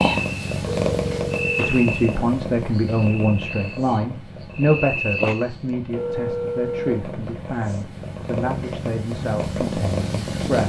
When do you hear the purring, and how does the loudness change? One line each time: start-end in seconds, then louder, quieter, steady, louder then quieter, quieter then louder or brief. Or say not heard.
0.0-10.6 quieter then louder.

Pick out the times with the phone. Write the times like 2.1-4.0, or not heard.
0.7-1.7, 5.9-7.2.